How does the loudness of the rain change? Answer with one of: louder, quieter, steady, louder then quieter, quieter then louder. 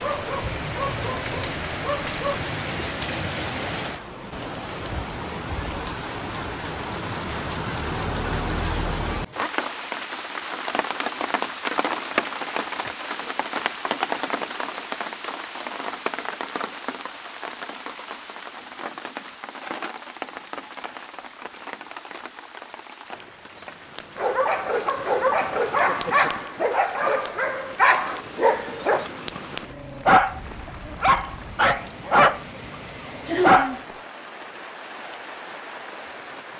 quieter.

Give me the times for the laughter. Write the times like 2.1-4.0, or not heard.
33.2-33.9.